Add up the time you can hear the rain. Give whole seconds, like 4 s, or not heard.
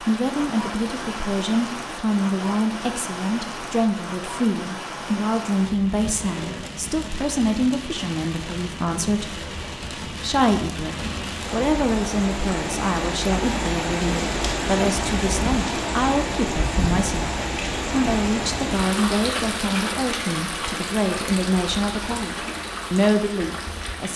24 s.